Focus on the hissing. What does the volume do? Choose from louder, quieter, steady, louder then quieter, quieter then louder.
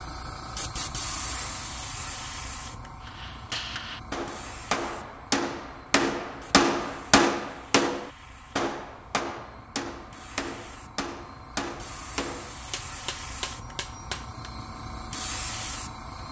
quieter then louder.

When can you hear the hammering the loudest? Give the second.
7 s.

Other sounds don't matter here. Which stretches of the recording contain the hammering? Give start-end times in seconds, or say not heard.
3.0-14.5.